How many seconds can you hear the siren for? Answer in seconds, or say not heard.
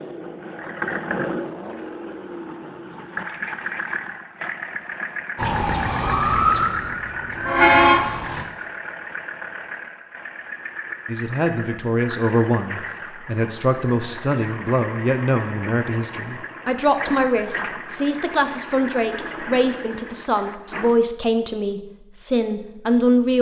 3 s.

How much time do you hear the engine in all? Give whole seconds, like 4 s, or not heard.
21 s.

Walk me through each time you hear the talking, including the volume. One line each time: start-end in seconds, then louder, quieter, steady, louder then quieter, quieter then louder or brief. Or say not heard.
11.1-23.3 steady.